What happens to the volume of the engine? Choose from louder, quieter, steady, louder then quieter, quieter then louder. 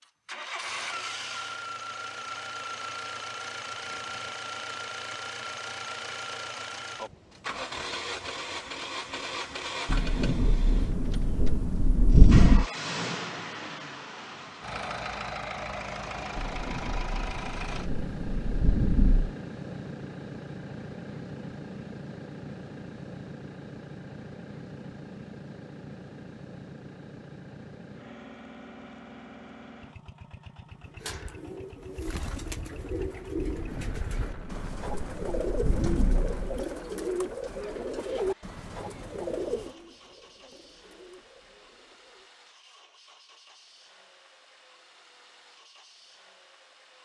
quieter.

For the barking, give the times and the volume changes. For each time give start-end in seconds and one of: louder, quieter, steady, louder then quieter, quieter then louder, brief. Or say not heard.
not heard.